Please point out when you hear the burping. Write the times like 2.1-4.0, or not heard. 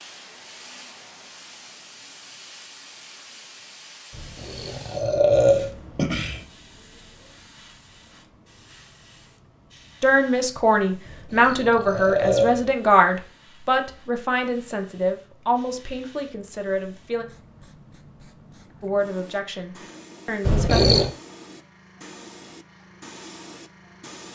4.1-6.5, 11.1-12.7, 20.4-21.1.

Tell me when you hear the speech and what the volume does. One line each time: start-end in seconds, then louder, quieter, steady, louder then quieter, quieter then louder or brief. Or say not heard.
10.0-17.2 quieter
18.8-20.9 brief.